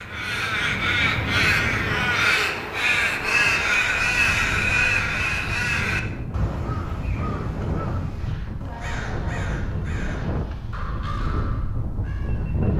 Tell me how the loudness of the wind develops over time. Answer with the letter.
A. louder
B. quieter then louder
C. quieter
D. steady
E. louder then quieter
A.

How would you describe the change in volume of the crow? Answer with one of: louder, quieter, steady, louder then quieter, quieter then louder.
quieter.